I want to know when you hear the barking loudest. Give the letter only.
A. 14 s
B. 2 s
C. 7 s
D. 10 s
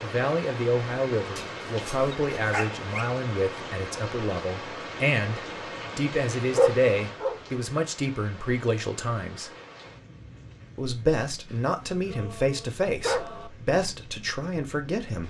C.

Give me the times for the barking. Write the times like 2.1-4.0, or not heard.
1.4-3.1, 6.5-7.4, 11.5-13.5.